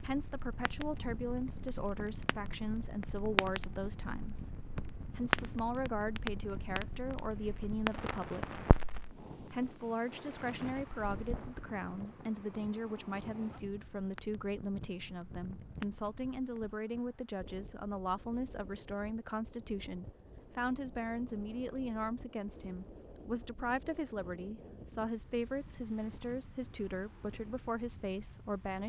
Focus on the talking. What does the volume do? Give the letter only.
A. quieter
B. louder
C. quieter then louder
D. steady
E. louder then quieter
D.